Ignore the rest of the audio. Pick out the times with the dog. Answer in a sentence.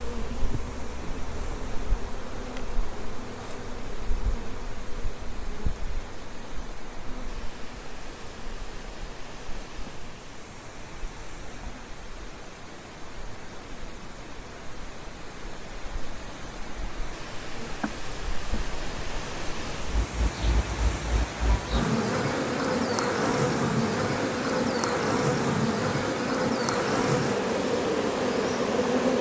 You can't hear the dog here.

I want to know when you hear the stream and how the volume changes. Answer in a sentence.
The stream can be heard from 0.0 to 29.1 s, getting louder.